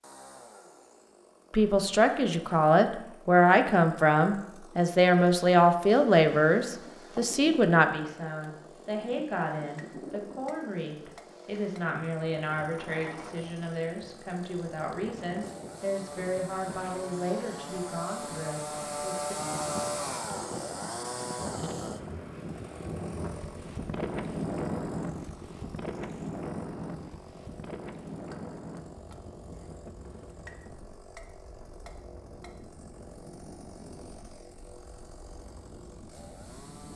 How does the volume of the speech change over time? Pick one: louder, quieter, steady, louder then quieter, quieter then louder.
quieter.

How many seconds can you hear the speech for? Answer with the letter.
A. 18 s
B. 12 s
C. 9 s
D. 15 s
A.